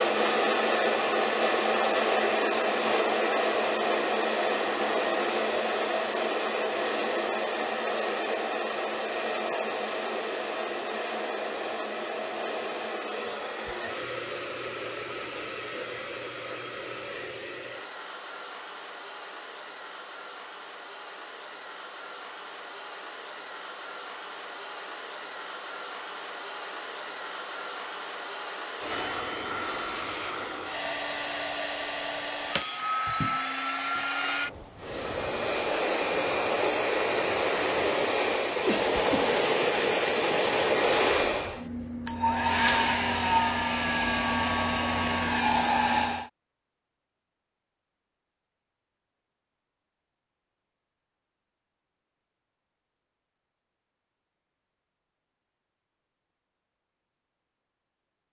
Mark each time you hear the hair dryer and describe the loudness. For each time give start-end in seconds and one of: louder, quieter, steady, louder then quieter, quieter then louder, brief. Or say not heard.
0.0-46.3 quieter then louder.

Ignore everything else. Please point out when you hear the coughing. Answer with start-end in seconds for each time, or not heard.
38.6-39.3.